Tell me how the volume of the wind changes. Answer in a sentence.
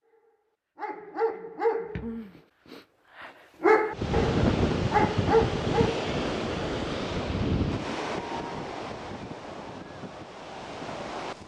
The loudness of the wind goes down.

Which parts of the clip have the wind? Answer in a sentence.
The wind can be heard from 3.9 to 11.4 s.